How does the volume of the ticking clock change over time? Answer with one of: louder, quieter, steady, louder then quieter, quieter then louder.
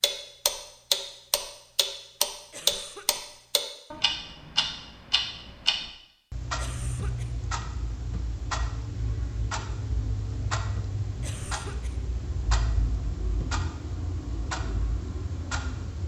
quieter.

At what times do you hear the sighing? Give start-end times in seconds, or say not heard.
not heard.